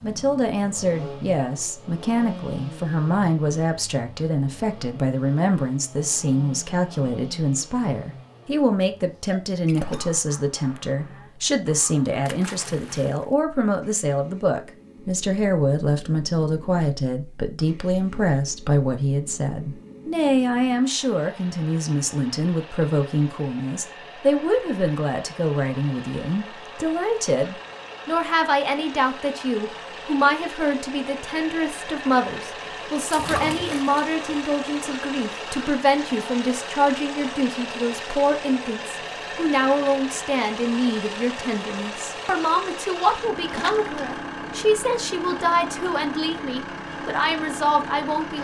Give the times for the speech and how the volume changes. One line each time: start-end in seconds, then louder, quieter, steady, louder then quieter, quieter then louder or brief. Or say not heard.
0.0-48.3 steady.